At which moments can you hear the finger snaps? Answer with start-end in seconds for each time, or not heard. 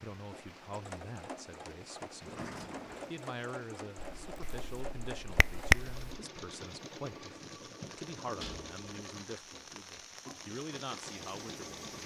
4.0-6.0.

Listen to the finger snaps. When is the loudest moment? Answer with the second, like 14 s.
6 s.